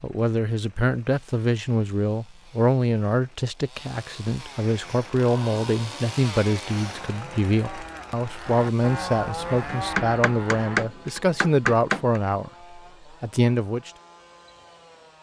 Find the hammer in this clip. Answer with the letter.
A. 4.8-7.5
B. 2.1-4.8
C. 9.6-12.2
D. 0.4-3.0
C.